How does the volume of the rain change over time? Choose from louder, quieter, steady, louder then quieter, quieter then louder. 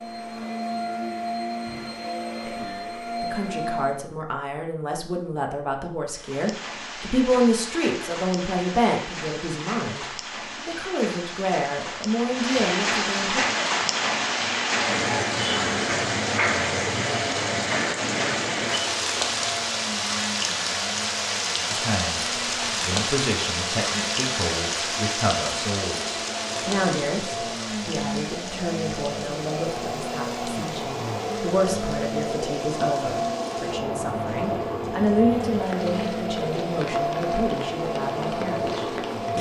louder then quieter.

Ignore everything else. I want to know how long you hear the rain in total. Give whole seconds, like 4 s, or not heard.
33 s.